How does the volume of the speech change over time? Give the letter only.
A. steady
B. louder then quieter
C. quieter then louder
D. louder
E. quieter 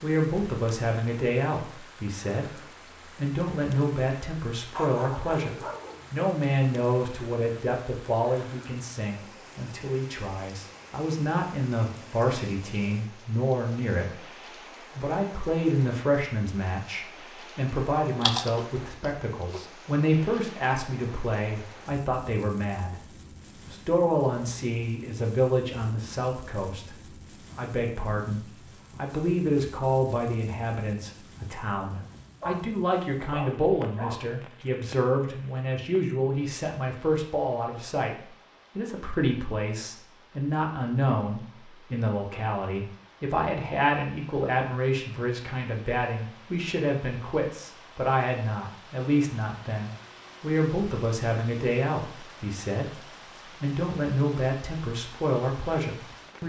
A.